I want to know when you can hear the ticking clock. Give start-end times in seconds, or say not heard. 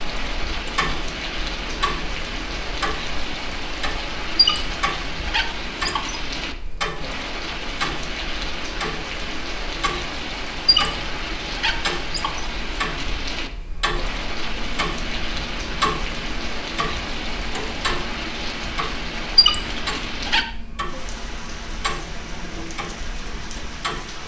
0.1-24.0.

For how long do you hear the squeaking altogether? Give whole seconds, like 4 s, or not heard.
5 s.